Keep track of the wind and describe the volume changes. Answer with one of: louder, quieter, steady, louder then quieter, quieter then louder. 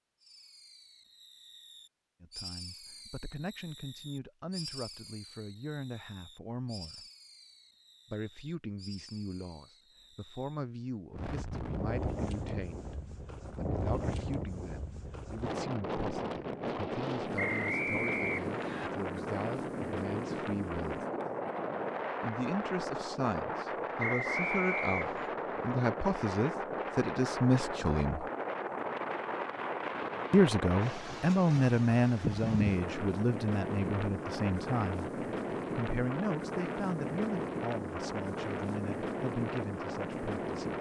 steady.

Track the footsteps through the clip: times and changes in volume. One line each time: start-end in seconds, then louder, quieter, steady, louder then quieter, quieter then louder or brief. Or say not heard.
not heard.